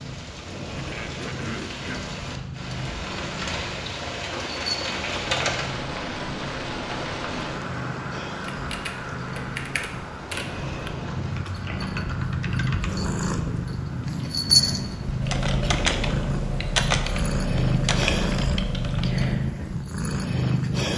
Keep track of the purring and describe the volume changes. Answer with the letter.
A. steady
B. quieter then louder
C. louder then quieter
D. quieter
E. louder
E.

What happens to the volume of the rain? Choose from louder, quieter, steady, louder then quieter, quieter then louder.
louder then quieter.